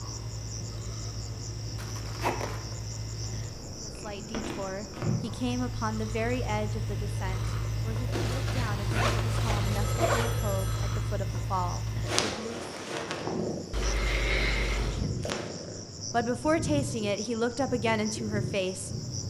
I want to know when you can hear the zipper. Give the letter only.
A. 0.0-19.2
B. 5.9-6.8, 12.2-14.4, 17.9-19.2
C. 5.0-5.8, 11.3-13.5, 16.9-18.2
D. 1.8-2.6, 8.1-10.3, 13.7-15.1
D.